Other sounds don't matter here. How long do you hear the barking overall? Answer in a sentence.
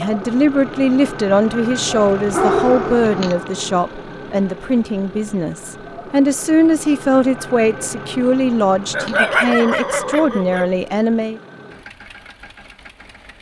You can hear the barking for 3 seconds altogether.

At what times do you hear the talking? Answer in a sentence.
The talking can be heard from 0.0 to 11.4 s.